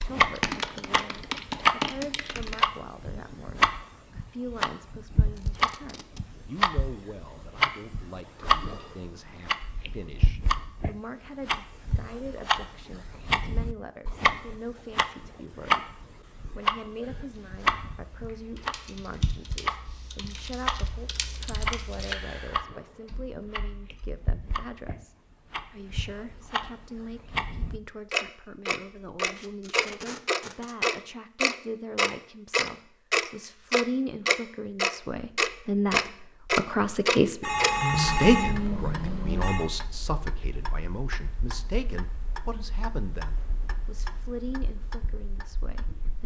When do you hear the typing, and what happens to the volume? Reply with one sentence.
You can hear the typing briefly from 0.0 to 2.6 s; and from 17.0 to 24.2 s, getting louder then quieter.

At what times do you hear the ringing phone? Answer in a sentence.
You can hear the ringing phone from 8.6 to 10.1 s and from 37.4 to 39.6 s.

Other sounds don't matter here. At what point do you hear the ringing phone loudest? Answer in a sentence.
The volume of the ringing phone peaks at 38 seconds.